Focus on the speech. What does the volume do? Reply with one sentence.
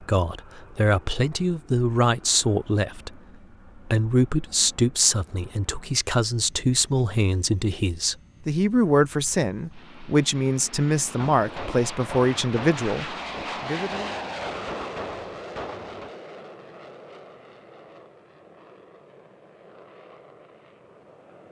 The loudness of the speech stays about the same.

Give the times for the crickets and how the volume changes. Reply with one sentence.
The crickets can't be heard in this clip.